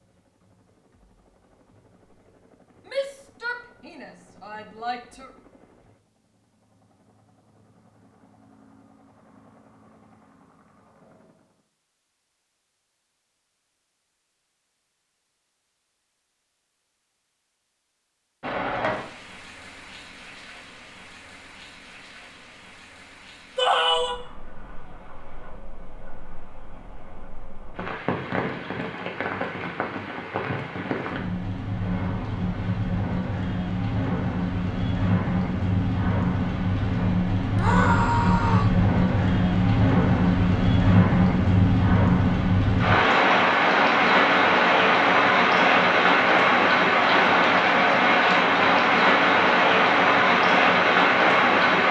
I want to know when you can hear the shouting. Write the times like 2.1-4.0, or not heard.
2.9-5.3, 23.6-24.1, 37.5-38.8.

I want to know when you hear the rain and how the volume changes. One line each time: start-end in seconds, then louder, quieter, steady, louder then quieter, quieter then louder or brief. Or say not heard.
18.4-51.8 louder.